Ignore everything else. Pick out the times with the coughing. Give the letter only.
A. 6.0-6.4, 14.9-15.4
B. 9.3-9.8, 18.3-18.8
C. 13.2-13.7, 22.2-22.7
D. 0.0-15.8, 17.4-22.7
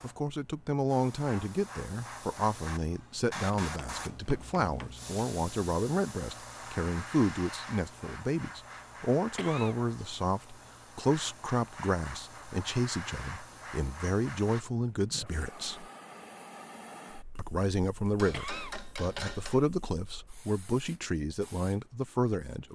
B.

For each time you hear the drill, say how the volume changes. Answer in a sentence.
The drill can't be heard in this clip.